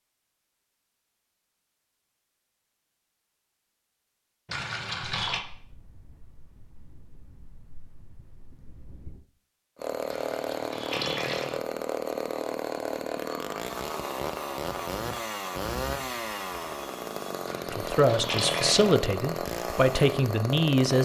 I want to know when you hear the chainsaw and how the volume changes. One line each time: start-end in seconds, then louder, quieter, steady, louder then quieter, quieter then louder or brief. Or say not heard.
9.8-21.0 steady.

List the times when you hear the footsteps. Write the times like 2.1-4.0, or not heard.
not heard.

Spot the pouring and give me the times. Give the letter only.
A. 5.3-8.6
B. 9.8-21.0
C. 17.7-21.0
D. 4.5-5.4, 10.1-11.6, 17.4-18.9
D.